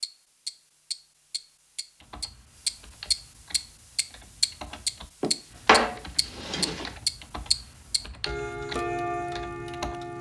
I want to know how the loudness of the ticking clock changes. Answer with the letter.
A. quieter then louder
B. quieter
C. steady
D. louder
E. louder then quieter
E.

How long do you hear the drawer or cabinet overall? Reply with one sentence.
The drawer or cabinet can be heard for 2 seconds in total.